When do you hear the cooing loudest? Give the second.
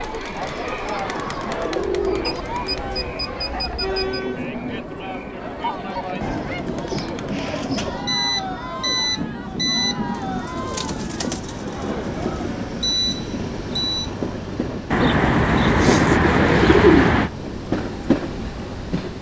17 s.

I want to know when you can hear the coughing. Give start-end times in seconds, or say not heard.
not heard.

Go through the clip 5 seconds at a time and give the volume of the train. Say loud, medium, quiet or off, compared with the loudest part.
medium, medium, loud, loud.